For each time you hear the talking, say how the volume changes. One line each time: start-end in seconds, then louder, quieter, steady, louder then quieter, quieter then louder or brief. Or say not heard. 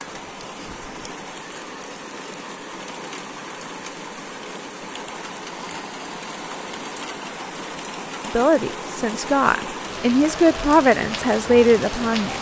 8.2-12.3 louder.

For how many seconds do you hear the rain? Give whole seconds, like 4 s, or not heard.
12 s.